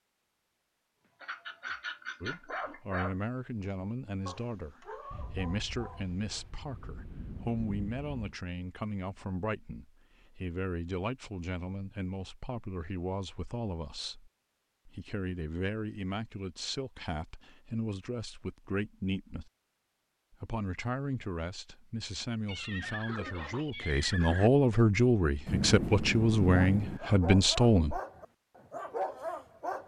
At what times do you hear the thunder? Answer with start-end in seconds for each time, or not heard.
5.1-8.3, 25.4-27.0.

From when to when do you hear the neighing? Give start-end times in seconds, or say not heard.
22.4-24.5.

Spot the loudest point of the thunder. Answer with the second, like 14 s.
26 s.